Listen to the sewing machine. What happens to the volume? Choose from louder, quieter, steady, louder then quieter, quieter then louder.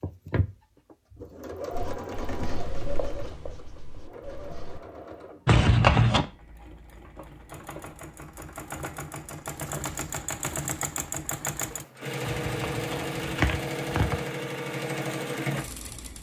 quieter then louder.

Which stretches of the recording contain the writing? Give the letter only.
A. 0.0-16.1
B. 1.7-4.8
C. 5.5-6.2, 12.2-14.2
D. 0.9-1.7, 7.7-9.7
B.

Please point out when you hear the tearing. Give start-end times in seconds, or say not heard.
5.5-6.2, 12.2-14.2.